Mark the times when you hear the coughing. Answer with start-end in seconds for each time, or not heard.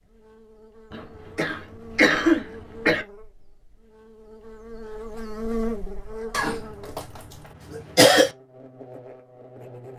0.9-3.0, 6.3-7.0, 7.8-8.3.